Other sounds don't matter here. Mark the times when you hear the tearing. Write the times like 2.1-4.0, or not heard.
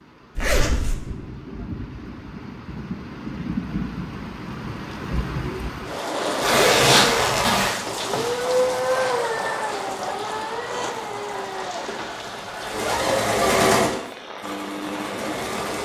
not heard.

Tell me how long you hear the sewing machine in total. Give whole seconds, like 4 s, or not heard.
3 s.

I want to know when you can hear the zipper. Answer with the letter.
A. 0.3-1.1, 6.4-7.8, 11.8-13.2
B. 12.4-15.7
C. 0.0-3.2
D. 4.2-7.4
A.